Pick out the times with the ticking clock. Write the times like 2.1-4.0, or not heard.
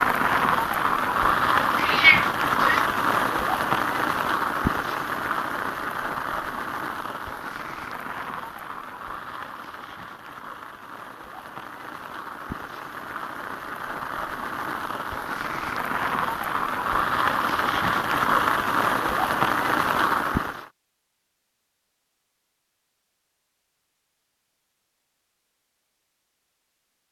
not heard.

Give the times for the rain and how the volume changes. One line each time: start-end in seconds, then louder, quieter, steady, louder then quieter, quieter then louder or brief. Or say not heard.
0.0-20.7 quieter then louder.